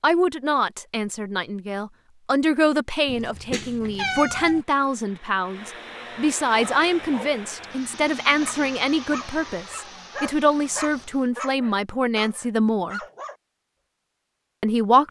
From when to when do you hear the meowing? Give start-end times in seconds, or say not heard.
3.0-4.7.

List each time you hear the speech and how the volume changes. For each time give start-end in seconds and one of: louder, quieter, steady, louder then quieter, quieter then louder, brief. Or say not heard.
0.0-13.0 steady
14.6-15.0 brief.